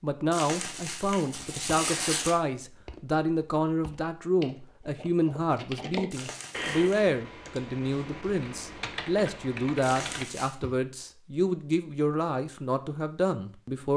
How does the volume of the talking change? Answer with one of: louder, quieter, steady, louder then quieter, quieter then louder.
steady.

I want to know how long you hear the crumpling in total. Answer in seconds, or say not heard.
4 s.